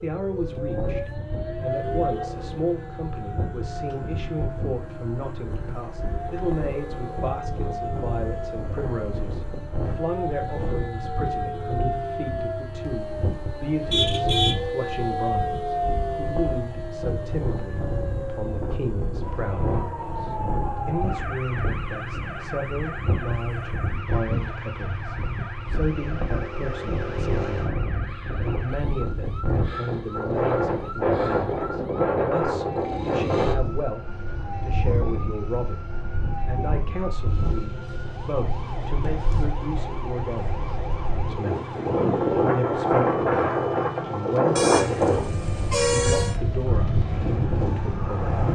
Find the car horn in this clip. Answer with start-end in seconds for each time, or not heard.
13.9-14.7, 44.5-46.4.